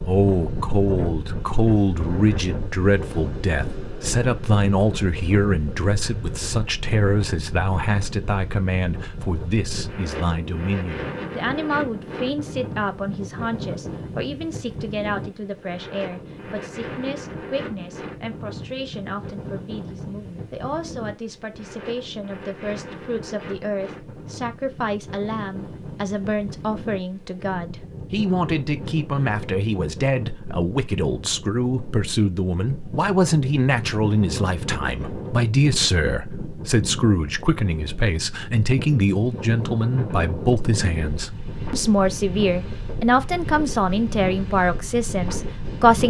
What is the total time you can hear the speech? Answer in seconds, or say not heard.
46 s.